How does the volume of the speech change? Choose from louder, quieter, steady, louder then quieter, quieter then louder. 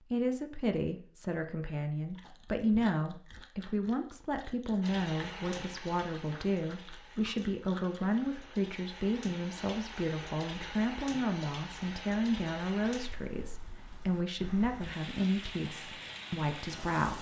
steady.